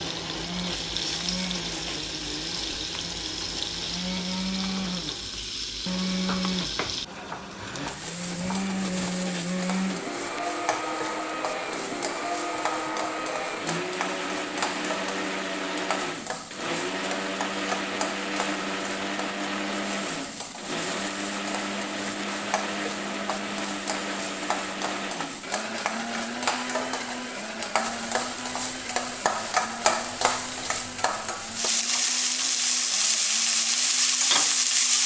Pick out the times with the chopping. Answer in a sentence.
You can hear the chopping from 6.2 to 9.2 s.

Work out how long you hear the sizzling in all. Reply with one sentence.
You can hear the sizzling for 35 seconds altogether.